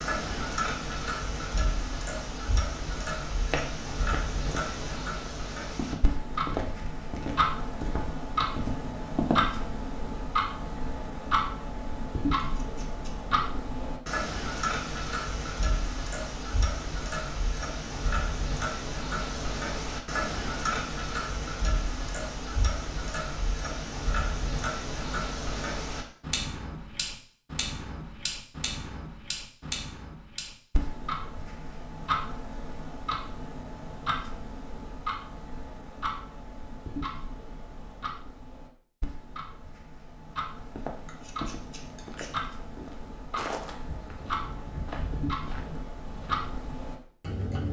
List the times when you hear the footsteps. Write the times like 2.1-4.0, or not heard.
3.5-9.7, 40.5-46.8.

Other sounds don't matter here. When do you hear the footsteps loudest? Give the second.
9 s.